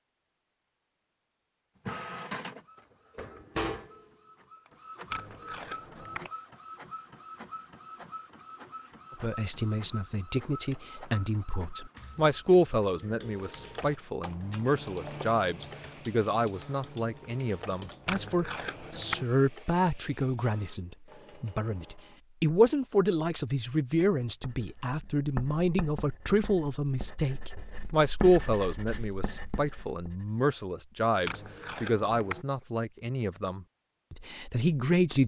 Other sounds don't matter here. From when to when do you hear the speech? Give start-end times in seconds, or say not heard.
9.2-35.2.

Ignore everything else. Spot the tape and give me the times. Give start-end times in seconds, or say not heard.
5.1-6.3, 18.1-19.2, 31.2-32.5.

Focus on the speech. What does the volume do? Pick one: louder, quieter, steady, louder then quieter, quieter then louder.
steady.